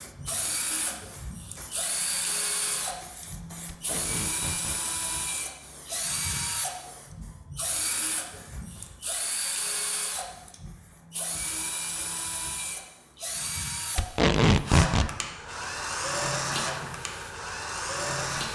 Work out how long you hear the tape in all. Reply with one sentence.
The tape can be heard for 2 seconds in total.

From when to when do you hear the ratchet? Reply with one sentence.
You can't hear the ratchet here.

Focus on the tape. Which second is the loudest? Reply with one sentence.
The loudest moment of the tape is at 14 seconds.